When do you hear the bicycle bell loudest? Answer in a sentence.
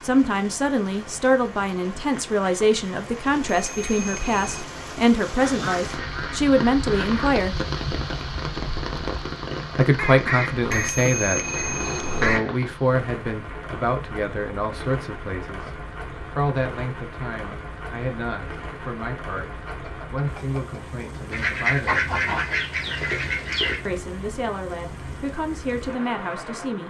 The volume of the bicycle bell peaks at 11 seconds.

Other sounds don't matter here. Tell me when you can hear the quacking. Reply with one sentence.
You can hear the quacking from 5.4 to 7.4 s, from 9.9 to 12.7 s and from 21.3 to 23.8 s.